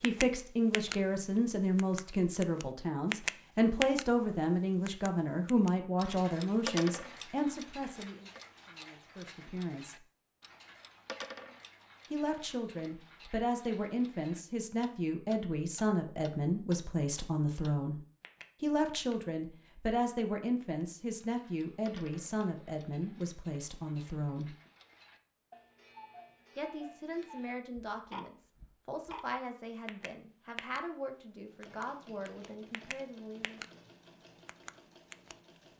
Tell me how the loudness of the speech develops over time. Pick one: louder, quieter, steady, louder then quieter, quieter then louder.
quieter.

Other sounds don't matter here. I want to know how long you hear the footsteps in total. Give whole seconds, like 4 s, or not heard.
not heard.